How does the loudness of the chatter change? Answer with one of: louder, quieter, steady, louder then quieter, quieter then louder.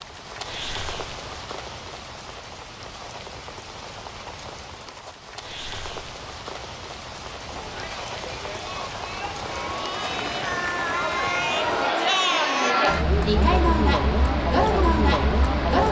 louder.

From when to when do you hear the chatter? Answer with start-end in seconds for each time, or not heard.
7.4-15.8.